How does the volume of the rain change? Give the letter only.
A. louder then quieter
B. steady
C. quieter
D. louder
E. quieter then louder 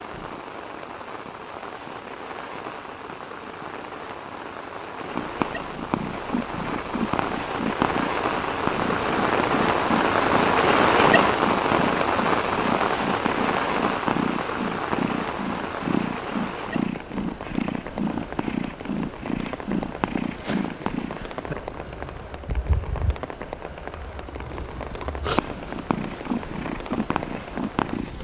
A.